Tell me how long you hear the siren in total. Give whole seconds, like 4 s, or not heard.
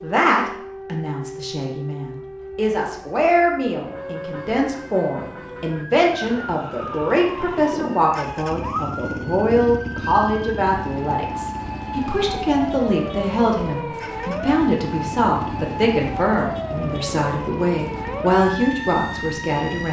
20 s.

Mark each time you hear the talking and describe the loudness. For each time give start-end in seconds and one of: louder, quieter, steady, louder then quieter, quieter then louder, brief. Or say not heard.
0.0-19.8 steady.